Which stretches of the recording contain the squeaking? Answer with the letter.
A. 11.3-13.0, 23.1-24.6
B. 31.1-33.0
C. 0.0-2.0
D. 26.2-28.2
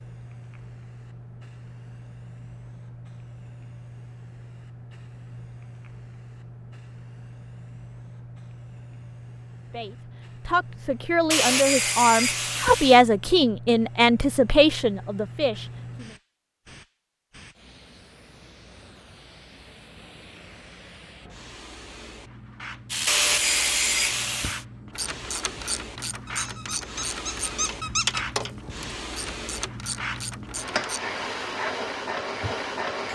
D.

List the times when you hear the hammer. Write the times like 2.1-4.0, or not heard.
not heard.